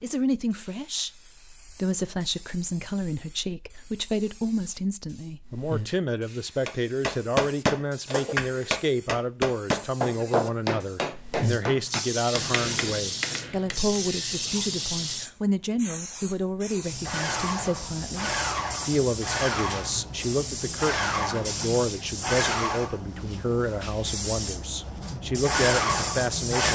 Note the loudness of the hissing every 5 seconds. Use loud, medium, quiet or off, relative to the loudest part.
quiet, quiet, medium, medium, medium, loud.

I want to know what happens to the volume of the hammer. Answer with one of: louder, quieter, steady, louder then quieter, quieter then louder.
quieter.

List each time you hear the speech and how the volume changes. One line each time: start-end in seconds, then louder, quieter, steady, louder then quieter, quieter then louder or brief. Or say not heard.
0.0-26.7 steady.